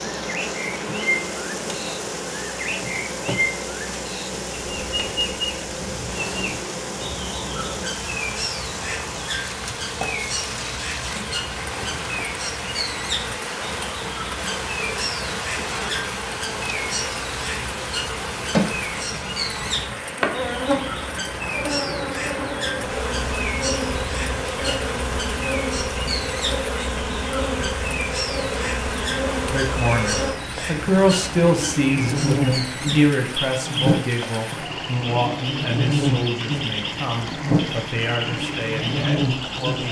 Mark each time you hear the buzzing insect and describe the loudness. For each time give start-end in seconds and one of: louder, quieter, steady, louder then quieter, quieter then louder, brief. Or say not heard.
0.0-39.8 louder.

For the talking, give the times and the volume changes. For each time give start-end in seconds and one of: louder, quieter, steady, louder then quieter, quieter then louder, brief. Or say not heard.
29.5-39.8 quieter.